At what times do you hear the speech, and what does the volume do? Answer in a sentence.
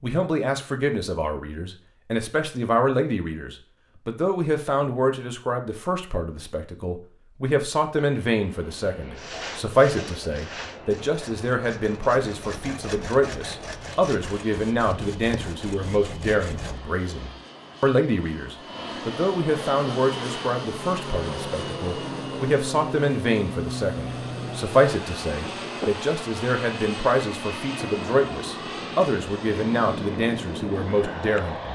The speech can be heard from 0.0 to 31.7 s, at a steady volume.